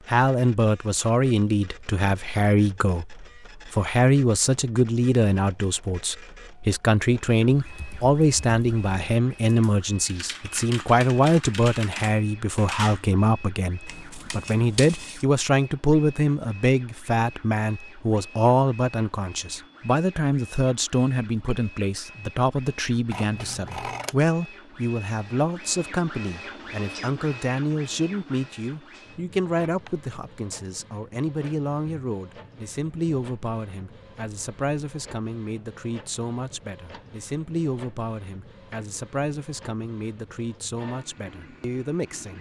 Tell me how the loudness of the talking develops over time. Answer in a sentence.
The volume of the talking goes down.